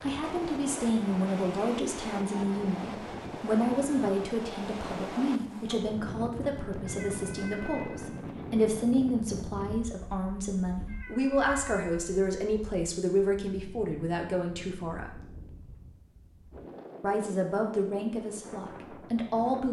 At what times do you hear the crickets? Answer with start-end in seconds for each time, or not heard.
not heard.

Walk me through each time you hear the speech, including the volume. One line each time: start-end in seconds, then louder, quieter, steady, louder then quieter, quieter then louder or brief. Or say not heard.
0.0-15.2 steady
17.0-19.6 brief.